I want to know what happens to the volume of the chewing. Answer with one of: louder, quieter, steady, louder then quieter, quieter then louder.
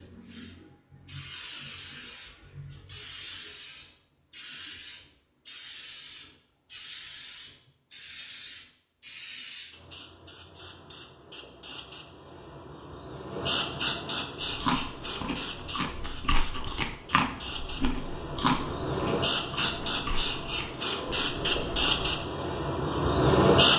louder then quieter.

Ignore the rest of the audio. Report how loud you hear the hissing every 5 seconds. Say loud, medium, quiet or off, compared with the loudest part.
quiet, quiet, medium, medium, loud.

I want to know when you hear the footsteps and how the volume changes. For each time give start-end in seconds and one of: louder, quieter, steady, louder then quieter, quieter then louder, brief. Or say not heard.
not heard.